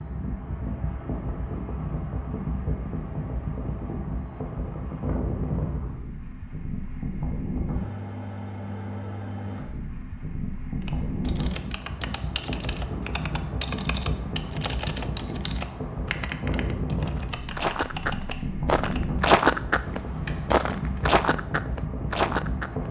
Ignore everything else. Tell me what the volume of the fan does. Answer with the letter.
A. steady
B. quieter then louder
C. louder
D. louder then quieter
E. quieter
A.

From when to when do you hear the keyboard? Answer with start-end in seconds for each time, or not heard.
10.8-21.1.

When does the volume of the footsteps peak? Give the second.
19 s.